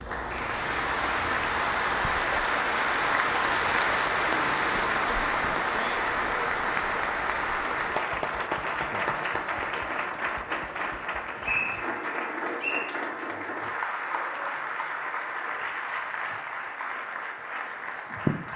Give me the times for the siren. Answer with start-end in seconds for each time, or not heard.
not heard.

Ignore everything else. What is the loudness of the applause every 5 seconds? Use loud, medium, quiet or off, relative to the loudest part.
loud, loud, medium, medium.